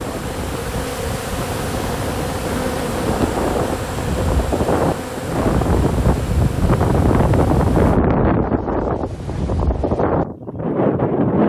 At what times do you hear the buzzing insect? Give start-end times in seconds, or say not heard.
0.0-8.0.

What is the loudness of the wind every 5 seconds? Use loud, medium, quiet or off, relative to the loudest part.
medium, loud, loud.